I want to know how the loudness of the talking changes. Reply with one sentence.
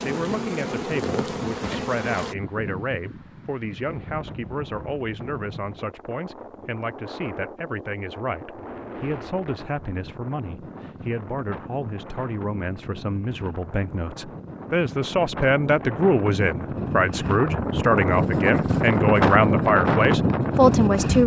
The loudness of the talking goes up.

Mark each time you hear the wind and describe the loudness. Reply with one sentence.
The wind can be heard from 0.2 to 21.2 s, getting louder.